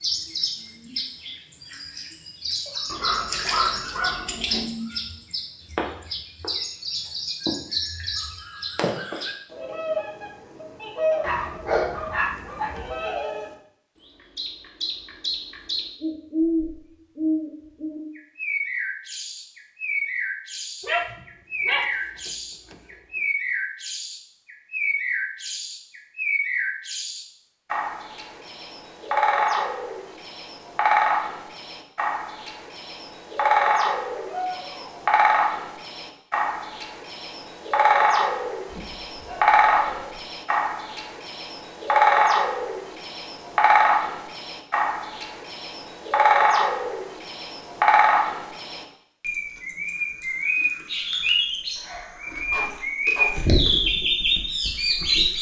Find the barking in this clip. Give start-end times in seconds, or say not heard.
2.9-4.7, 11.2-12.8, 20.8-21.9, 34.1-35.0, 38.7-40.0, 51.8-53.6.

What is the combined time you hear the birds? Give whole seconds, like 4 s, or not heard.
55 s.